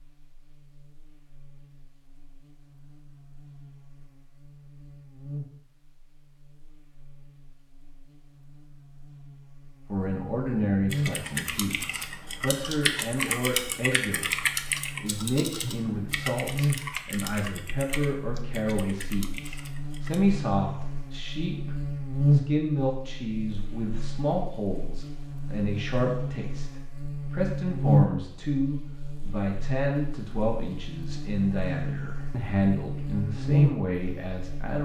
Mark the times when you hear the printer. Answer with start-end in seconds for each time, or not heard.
not heard.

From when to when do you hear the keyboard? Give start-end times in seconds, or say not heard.
10.9-20.3.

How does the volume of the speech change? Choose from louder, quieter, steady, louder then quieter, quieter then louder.
steady.